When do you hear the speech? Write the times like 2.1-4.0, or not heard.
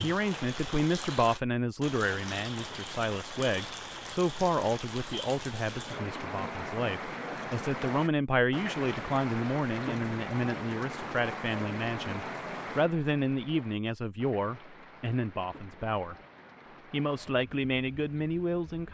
0.0-16.1, 16.9-18.8.